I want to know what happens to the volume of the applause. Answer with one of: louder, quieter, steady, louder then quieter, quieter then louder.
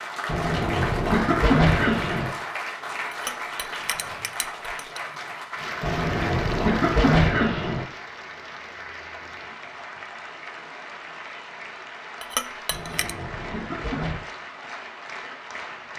quieter.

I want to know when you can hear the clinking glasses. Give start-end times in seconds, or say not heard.
3.1-5.0, 12.2-13.2.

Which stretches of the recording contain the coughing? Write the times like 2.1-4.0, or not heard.
0.2-2.3, 5.8-7.8, 12.7-14.2.